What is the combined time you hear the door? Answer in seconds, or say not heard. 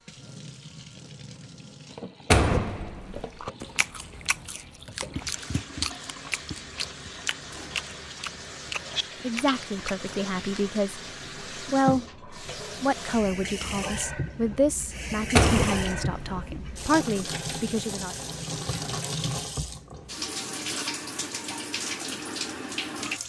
2 s.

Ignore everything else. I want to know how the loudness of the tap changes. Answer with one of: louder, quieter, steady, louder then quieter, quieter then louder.
louder.